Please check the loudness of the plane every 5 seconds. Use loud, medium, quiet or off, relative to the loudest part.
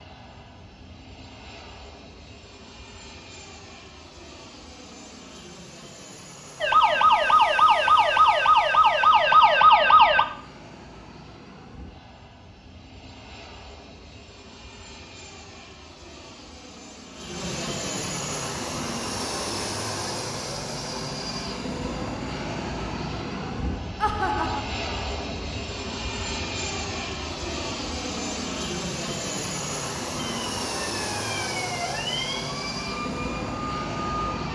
quiet, quiet, quiet, loud, loud, loud, loud.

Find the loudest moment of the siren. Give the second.
10 s.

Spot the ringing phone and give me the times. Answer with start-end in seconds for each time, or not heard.
not heard.